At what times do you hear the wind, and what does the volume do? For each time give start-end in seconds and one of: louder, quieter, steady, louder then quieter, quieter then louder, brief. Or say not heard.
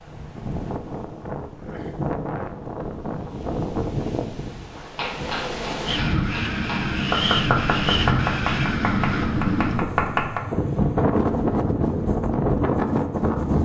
0.0-13.6 louder.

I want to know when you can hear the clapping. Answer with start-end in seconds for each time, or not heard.
4.7-10.4.